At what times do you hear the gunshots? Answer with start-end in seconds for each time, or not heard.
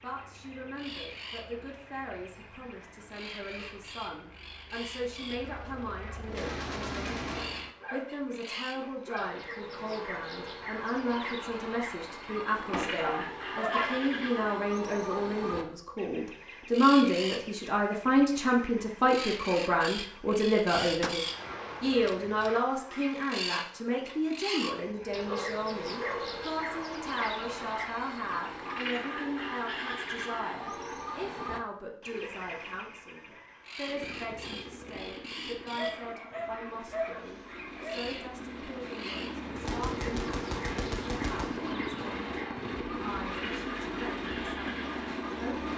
6.2-7.7, 20.8-22.6, 39.5-41.8.